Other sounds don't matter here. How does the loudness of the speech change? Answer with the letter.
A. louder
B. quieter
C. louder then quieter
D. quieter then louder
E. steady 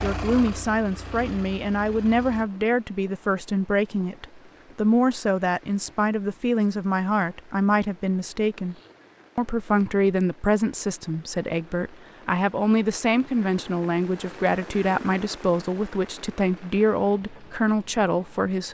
E.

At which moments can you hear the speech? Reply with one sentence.
The speech can be heard from 0.0 to 8.8 s and from 9.3 to 18.6 s.